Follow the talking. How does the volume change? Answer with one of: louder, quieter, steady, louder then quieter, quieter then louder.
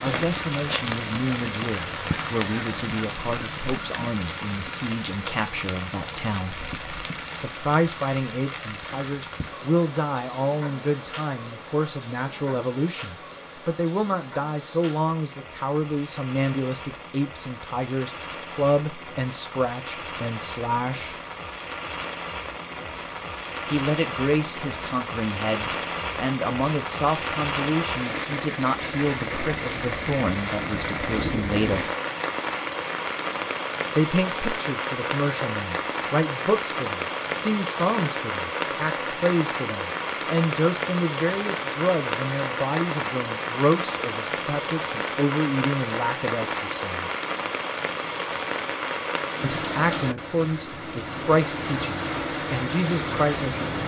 steady.